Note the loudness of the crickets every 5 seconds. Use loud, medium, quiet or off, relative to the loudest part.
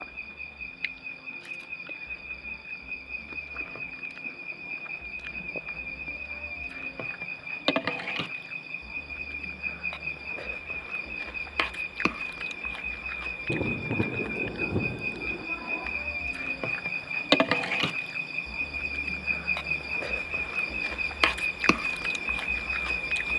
medium, medium, medium, loud, loud.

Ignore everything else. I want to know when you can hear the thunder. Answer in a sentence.
The thunder can be heard from 13.4 to 15.4 s.